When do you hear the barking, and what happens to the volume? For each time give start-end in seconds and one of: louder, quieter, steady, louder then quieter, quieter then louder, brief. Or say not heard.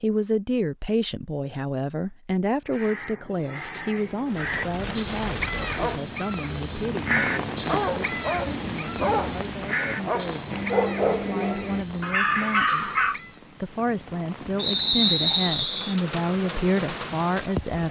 5.5-13.2 louder.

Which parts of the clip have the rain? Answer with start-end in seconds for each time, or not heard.
4.2-17.8.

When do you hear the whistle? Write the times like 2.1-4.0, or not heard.
14.6-15.9.